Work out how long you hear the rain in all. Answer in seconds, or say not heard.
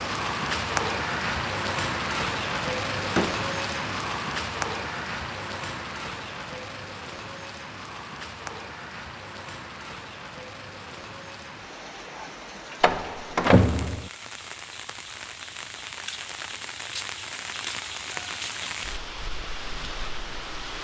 21 s.